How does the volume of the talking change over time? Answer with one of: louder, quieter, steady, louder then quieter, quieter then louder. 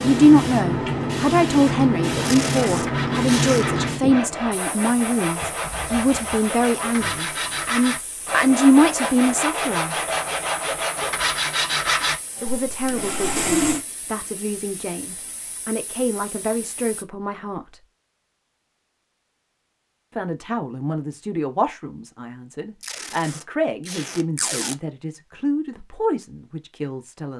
quieter.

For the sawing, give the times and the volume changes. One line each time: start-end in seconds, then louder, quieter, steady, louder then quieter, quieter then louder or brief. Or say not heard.
2.0-13.8 louder.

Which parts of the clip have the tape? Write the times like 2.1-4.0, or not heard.
2.2-3.6, 22.8-24.8.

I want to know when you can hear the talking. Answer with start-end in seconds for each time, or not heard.
0.0-9.9, 12.4-17.8, 20.1-27.3.